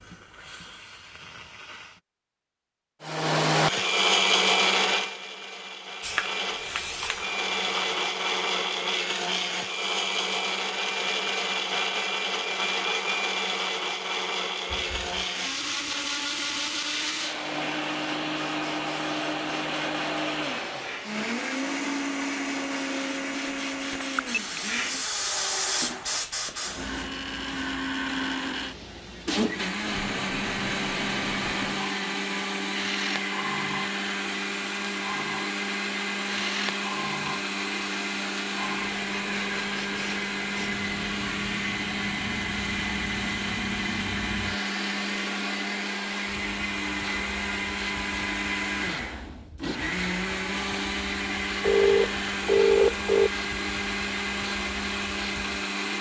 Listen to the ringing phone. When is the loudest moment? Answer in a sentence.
The loudest moment of the ringing phone is at 53 seconds.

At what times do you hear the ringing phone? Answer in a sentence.
You can hear the ringing phone from 23.9 to 24.6 s and from 51.6 to 53.3 s.